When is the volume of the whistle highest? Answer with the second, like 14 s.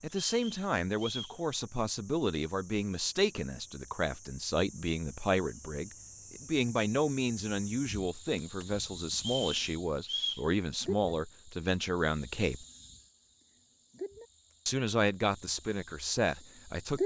10 s.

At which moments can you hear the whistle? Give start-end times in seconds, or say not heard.
0.2-1.4, 9.2-10.4.